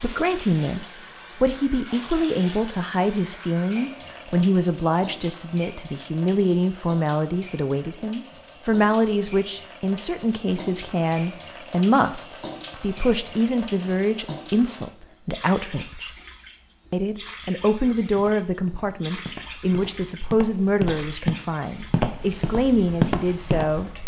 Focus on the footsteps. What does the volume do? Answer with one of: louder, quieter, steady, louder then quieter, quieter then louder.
louder.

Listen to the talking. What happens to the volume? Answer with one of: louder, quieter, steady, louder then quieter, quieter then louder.
steady.